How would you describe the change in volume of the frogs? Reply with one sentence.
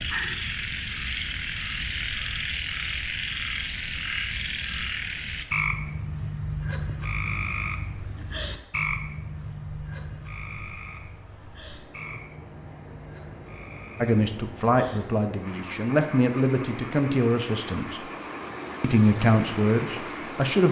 The volume of the frogs goes down.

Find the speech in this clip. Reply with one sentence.
You can hear the speech from 14.0 to 18.0 s and from 18.8 to 20.6 s.